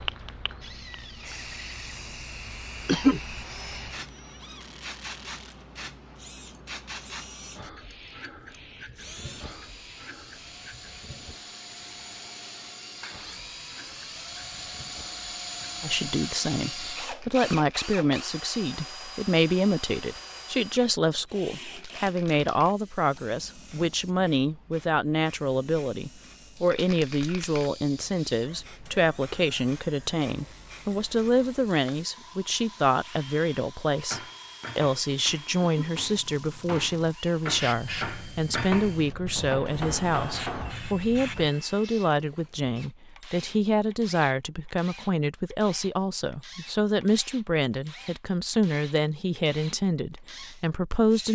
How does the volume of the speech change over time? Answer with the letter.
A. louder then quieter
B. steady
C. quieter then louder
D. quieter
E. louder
B.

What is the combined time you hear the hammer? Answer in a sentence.
You can hear the hammer for 7 seconds altogether.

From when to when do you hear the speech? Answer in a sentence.
The speech can be heard from 15.8 to 51.3 s.